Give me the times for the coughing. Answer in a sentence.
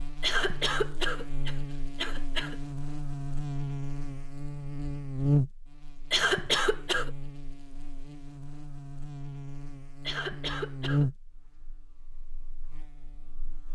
The coughing can be heard from 0.2 to 2.5 s, from 6.1 to 7.1 s and from 10.0 to 11.1 s.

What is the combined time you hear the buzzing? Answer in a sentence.
The buzzing can be heard for 14 seconds in total.